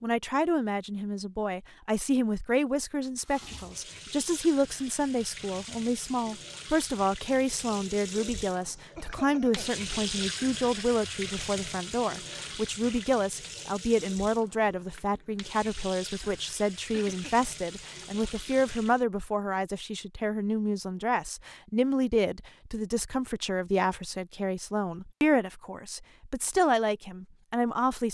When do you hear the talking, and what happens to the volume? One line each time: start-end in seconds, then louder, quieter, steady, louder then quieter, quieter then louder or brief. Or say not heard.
0.0-28.0 steady.